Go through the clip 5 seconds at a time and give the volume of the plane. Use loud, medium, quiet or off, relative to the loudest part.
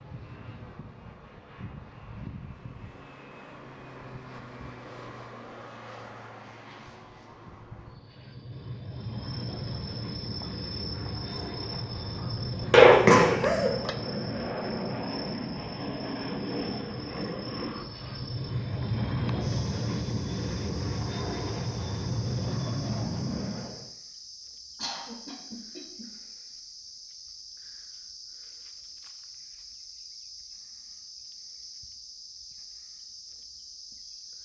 quiet, medium, loud, loud, loud, off, off.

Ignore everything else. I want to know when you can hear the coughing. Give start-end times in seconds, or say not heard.
12.7-13.8, 24.8-26.1.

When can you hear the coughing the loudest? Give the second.
13 s.